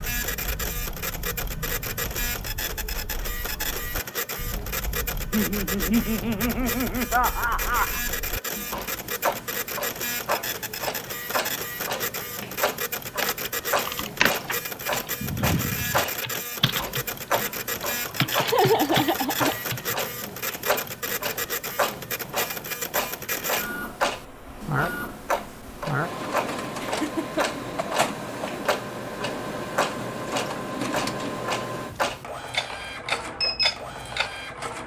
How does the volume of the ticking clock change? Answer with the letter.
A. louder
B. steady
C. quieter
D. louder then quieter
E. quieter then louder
A.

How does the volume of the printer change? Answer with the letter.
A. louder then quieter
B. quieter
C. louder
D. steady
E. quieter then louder
D.